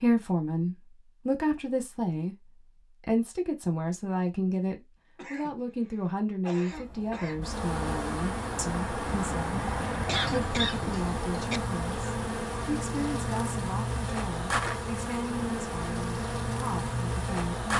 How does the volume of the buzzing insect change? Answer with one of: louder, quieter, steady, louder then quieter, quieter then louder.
steady.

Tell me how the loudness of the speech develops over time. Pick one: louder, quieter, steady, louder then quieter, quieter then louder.
quieter.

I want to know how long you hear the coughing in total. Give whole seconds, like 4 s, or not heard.
4 s.